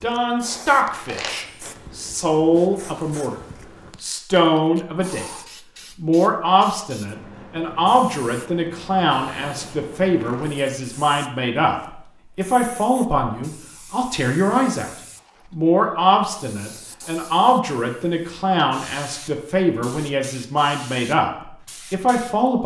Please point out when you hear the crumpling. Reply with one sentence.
The crumpling can be heard from 0.9 to 1.8 s.